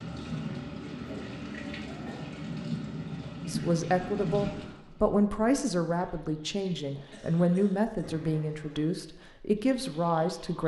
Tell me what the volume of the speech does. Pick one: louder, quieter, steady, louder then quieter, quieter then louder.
steady.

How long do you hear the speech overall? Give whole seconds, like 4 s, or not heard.
7 s.